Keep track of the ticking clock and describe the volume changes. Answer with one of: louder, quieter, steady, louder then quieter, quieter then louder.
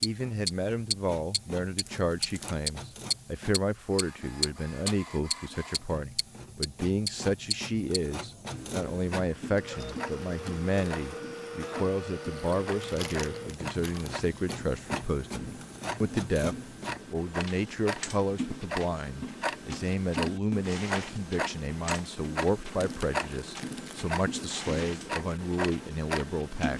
quieter then louder.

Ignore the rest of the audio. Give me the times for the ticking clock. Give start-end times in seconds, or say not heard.
0.0-26.7.